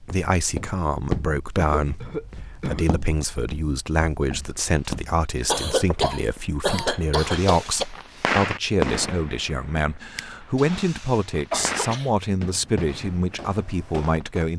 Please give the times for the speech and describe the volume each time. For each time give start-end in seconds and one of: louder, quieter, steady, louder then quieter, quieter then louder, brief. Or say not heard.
0.0-14.5 steady.